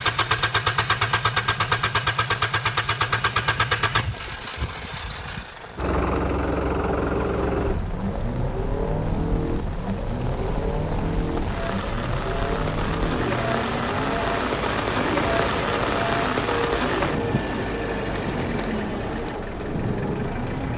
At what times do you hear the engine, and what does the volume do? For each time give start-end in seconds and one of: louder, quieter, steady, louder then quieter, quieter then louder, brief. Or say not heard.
0.0-20.7 quieter.